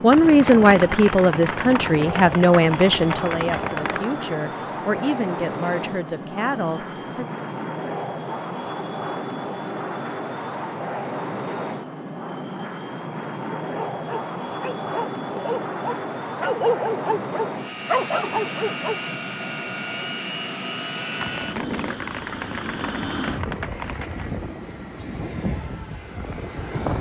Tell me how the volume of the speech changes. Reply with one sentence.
The loudness of the speech goes down.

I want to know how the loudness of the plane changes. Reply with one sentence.
The volume of the plane stays about the same.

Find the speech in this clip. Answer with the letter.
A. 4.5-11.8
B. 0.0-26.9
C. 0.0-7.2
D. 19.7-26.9
C.